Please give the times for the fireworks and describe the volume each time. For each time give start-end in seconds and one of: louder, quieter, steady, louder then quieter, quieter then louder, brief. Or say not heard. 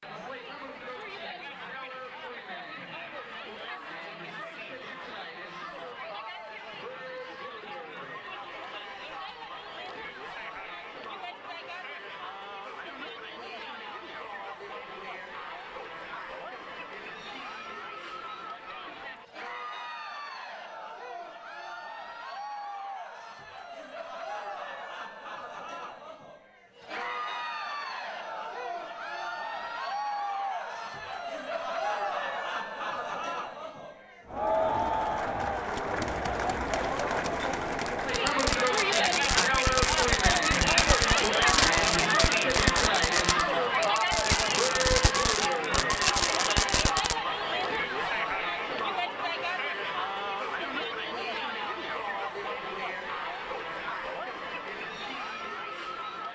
37.4-47.1 steady.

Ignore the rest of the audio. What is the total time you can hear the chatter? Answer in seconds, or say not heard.
56 s.